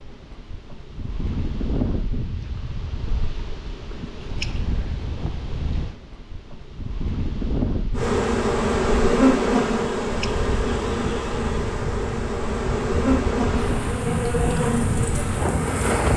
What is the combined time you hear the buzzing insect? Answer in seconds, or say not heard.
8 s.